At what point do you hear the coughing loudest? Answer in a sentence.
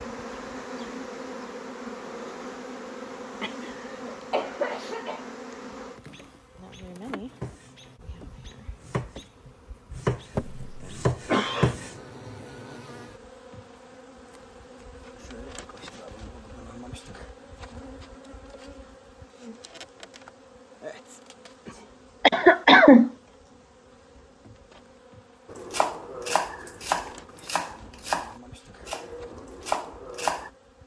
The volume of the coughing peaks at 23 seconds.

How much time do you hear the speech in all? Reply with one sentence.
The speech can't be heard in this clip.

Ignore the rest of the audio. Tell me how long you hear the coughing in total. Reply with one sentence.
You can hear the coughing for 4 seconds altogether.